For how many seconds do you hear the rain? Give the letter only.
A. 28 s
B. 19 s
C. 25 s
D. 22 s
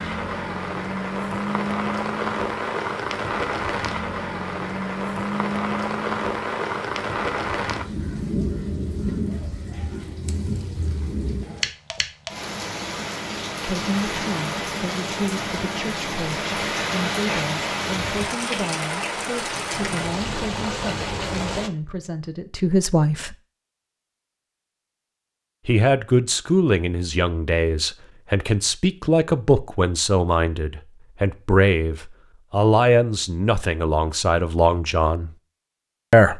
D.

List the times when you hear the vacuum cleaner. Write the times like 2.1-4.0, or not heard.
not heard.